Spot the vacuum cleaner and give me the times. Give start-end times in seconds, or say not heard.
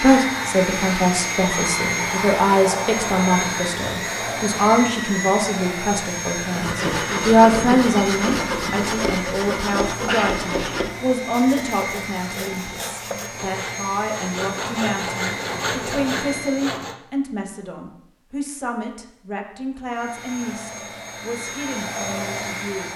0.0-16.8, 19.9-22.9.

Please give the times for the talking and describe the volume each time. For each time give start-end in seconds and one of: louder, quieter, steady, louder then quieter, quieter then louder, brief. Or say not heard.
0.0-22.9 quieter.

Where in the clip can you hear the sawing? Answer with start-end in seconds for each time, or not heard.
6.4-16.9.